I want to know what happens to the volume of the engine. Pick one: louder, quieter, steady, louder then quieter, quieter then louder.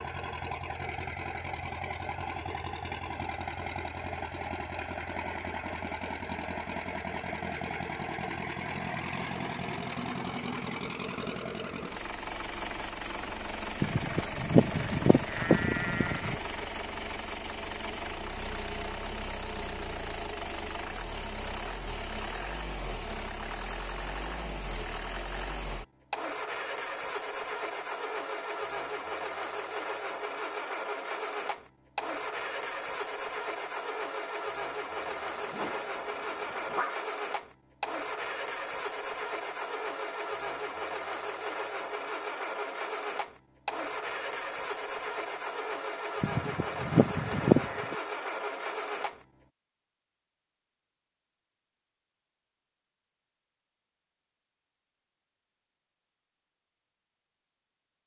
steady.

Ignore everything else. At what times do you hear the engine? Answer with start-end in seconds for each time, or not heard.
0.0-49.5.